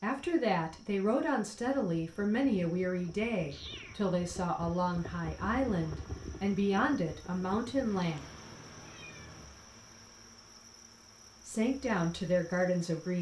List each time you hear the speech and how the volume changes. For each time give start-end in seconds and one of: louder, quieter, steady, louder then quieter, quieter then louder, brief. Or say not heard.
0.0-8.2 steady
11.4-13.1 brief.